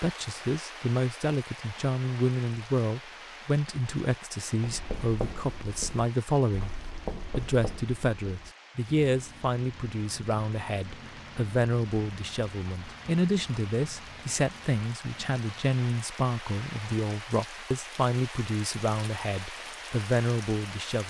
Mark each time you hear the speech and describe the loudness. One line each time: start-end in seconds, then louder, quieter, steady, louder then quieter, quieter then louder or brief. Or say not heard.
0.0-6.8 steady
7.3-21.0 steady.